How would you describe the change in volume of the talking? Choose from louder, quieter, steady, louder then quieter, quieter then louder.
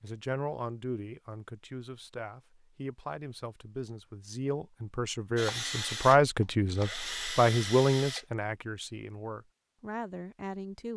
louder then quieter.